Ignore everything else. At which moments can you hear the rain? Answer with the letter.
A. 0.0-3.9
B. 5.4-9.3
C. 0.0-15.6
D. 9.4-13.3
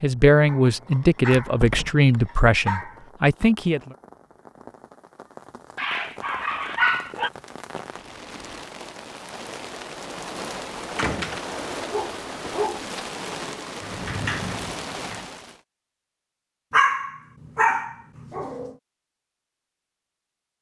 C.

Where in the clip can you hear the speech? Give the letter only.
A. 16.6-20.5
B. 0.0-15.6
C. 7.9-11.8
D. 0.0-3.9
D.